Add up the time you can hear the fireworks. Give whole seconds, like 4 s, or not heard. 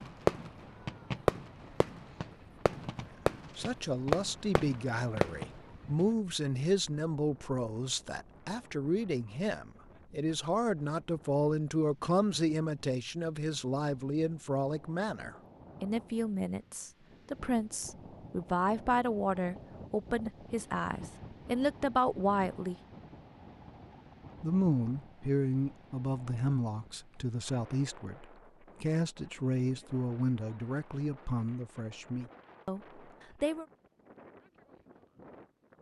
6 s.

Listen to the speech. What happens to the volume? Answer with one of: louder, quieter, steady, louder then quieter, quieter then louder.
steady.